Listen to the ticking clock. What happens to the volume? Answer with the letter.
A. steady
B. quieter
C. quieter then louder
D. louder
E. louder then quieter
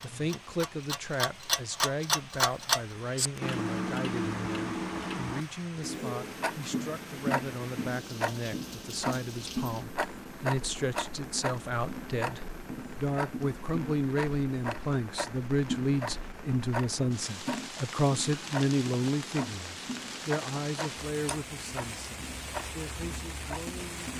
B.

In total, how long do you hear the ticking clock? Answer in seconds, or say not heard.
24 s.